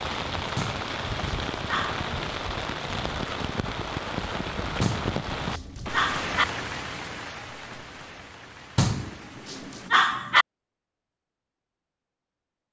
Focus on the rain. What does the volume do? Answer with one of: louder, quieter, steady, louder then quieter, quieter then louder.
quieter.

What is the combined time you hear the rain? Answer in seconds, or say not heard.
10 s.